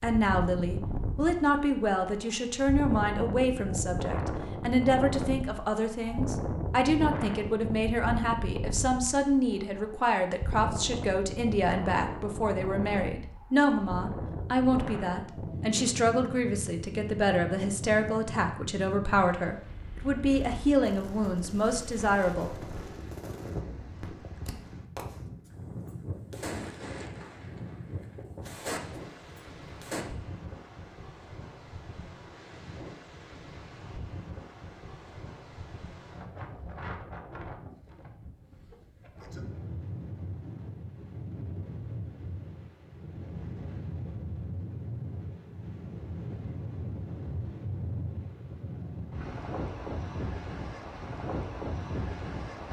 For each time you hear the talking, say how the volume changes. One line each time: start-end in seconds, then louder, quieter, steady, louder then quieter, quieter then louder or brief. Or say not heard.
0.0-22.6 steady.